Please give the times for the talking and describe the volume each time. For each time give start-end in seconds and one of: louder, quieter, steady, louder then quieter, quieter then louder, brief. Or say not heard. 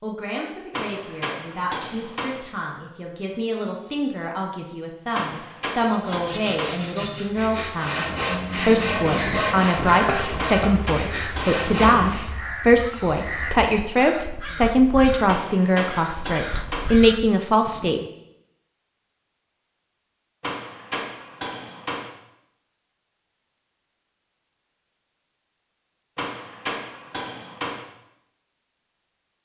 0.0-18.0 louder.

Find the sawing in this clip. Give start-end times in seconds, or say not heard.
5.8-12.3.